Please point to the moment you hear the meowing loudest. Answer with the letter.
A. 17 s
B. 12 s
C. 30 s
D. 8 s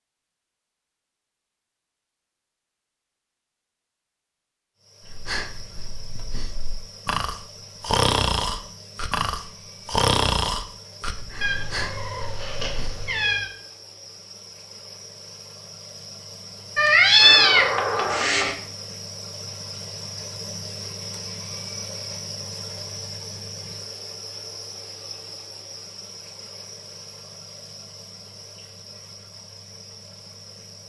A.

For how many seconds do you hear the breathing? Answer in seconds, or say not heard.
8 s.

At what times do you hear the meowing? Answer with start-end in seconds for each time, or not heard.
11.4-13.5, 16.8-18.6.